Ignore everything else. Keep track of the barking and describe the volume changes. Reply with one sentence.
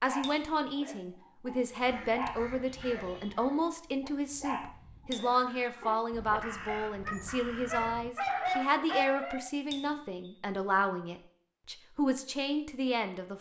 The loudness of the barking goes up.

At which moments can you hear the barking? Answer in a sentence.
You can hear the barking from 0.0 to 9.4 s.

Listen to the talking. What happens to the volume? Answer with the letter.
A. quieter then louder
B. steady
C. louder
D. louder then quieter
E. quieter
B.